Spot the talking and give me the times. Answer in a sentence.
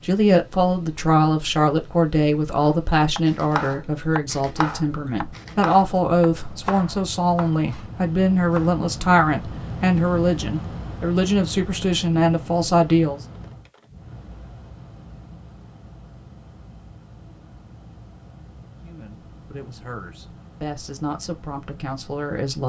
You can hear the talking from 0.0 to 13.2 s and from 18.8 to 22.6 s.